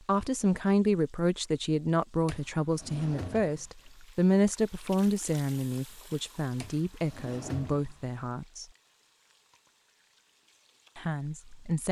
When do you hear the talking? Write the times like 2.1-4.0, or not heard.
0.1-8.7, 10.9-11.8.